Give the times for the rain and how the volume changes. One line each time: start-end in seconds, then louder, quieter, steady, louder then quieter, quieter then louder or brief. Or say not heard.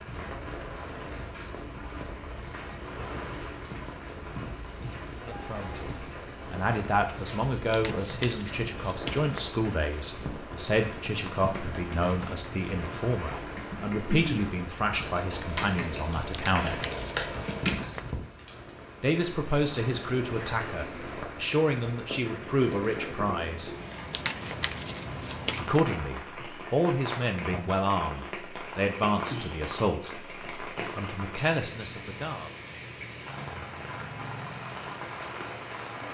0.0-36.0 steady.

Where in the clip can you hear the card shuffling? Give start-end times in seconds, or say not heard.
7.7-9.5, 16.3-18.1, 24.1-25.9.